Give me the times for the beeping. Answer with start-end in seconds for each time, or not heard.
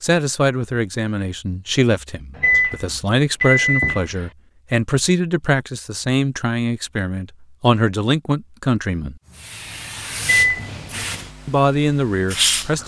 2.4-4.2, 10.2-10.8.